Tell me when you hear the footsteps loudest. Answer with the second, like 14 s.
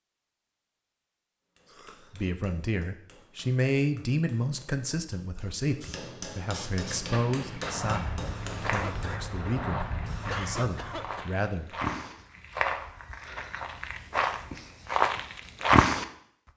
16 s.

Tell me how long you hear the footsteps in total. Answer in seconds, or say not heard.
9 s.